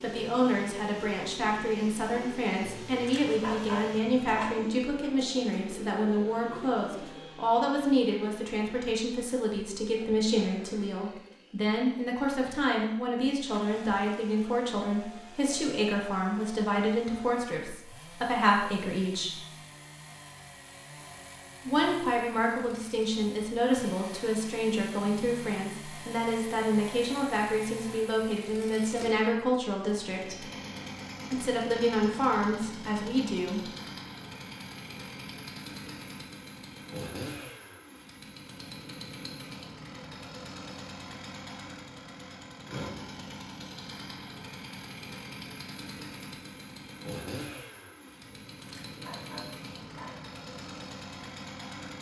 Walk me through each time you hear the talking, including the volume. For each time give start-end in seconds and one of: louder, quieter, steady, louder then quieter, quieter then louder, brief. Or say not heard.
0.0-19.4 steady
21.6-30.4 steady
31.3-33.6 brief.